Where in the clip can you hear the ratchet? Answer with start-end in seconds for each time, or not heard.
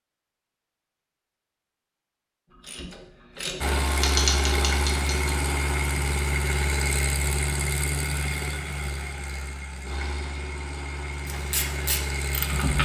2.5-5.3, 11.2-12.8.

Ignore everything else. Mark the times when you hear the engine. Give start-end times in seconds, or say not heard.
3.6-12.8.